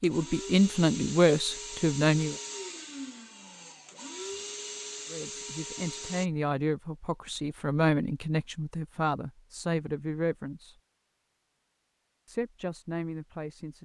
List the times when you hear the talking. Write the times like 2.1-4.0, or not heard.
0.0-2.4, 5.1-10.8, 12.2-13.8.